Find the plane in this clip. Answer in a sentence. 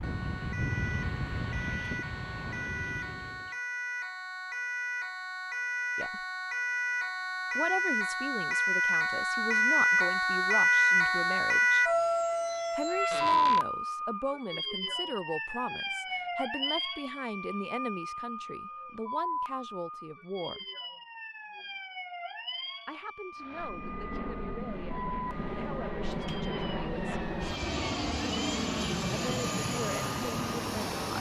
You can hear the plane from 0.0 to 3.5 s and from 23.4 to 31.1 s.